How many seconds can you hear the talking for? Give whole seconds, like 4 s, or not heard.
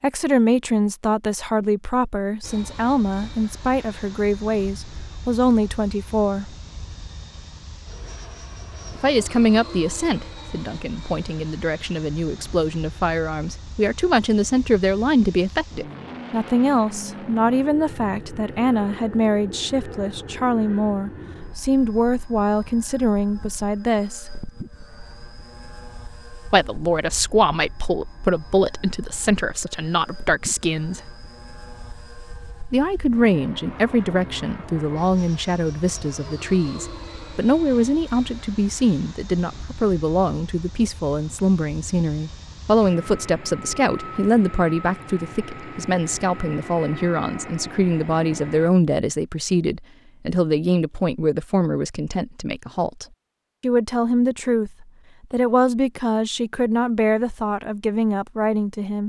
53 s.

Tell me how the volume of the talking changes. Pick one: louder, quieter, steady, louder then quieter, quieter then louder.
steady.